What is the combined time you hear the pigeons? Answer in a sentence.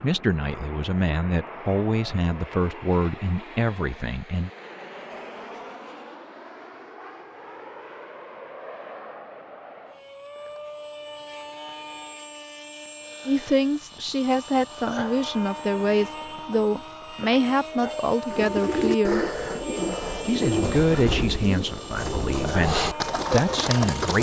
You can hear the pigeons for 6 seconds altogether.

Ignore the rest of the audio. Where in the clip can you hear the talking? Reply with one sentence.
The talking can be heard from 0.0 to 4.5 s, from 13.2 to 19.2 s and from 20.2 to 24.1 s.